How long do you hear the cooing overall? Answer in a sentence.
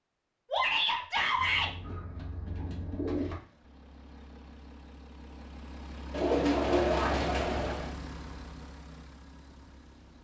The cooing can be heard for 4 seconds in total.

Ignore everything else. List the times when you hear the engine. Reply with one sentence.
The engine can be heard from 3.2 to 10.1 s.